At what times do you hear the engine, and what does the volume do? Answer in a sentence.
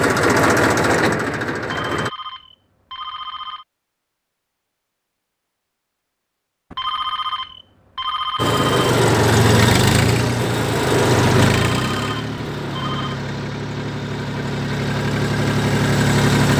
You can hear the engine briefly from 0.0 to 2.1 s; and from 8.3 to 16.5 s, getting quieter then louder.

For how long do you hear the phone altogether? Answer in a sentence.
The phone can be heard for 6 seconds in total.